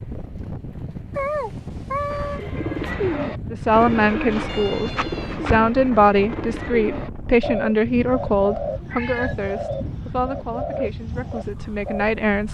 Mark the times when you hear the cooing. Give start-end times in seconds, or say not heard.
2.0-12.2.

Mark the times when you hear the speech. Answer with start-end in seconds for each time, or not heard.
3.5-12.4.